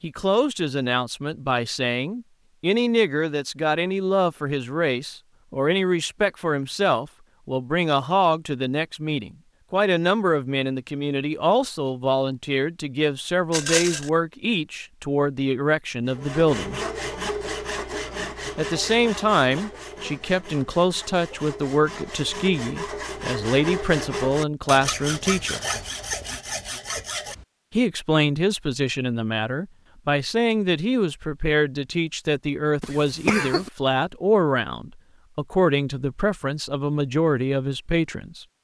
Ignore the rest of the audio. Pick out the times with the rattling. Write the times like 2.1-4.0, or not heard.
13.5-14.1.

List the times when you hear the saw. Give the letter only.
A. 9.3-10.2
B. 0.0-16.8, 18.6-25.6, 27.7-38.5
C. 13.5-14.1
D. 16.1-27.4
D.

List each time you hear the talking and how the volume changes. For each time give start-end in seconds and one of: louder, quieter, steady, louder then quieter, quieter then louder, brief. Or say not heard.
0.0-16.8 steady
18.6-25.6 steady
27.7-38.5 steady.